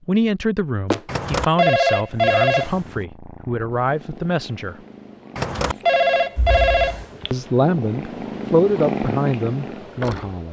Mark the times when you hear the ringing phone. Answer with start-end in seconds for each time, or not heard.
1.1-3.0, 5.3-7.2.